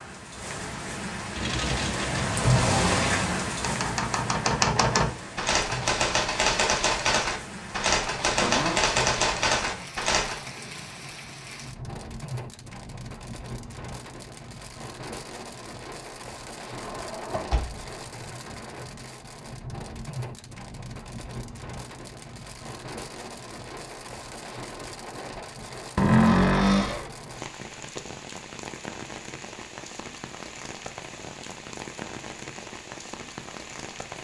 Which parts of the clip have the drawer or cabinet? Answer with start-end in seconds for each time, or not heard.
8.4-8.9, 16.8-18.2, 25.9-27.1.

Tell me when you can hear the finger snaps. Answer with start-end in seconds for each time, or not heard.
not heard.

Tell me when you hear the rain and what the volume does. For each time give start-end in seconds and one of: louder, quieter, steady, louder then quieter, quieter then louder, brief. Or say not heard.
0.0-34.1 quieter.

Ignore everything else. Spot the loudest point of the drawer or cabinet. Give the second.
26 s.